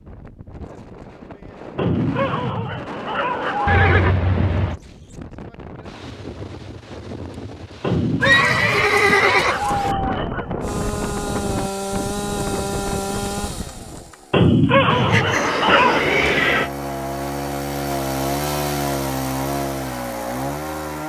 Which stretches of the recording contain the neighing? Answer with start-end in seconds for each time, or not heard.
3.6-4.8, 8.2-9.9, 14.8-16.7.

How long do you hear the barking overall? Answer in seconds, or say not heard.
7 s.